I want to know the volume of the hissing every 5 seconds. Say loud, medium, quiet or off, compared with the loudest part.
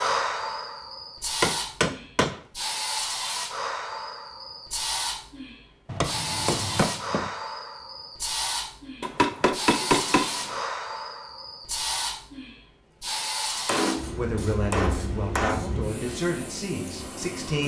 loud, loud, loud, medium.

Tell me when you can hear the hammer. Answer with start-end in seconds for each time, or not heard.
1.4-2.4, 5.8-7.3, 9.0-10.6, 13.7-15.7.